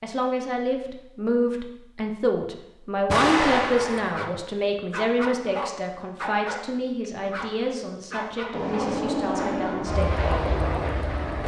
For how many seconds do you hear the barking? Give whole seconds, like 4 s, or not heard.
6 s.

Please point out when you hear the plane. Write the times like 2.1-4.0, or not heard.
8.5-11.4.